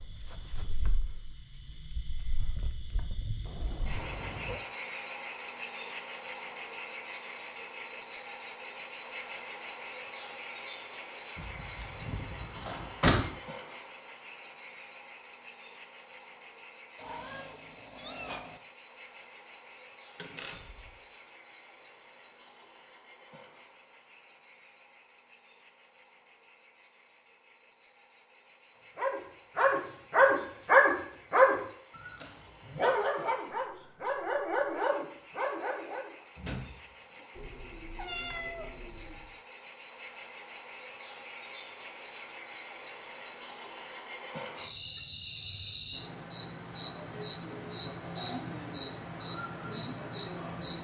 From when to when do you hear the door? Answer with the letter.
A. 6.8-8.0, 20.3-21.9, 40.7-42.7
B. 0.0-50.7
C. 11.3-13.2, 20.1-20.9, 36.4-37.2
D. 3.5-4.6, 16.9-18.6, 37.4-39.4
C.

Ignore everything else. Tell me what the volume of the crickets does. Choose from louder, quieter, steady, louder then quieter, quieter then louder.
quieter then louder.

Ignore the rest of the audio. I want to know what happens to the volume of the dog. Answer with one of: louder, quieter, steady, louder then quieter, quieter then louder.
quieter.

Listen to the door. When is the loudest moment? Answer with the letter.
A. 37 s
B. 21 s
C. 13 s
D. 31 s
C.